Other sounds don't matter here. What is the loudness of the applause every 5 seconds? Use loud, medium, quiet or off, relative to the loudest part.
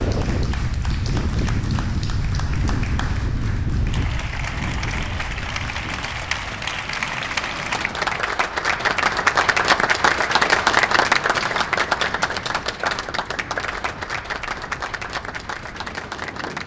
quiet, loud, loud, medium.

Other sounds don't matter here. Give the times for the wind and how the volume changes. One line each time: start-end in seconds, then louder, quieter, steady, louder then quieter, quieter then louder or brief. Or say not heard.
0.0-16.6 quieter.